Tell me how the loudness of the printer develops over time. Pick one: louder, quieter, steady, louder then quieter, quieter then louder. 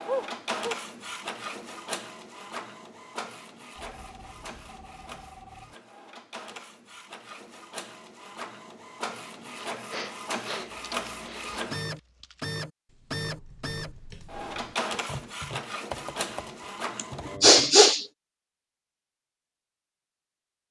quieter then louder.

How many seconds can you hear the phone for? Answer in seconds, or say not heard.
2 s.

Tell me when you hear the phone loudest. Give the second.
5 s.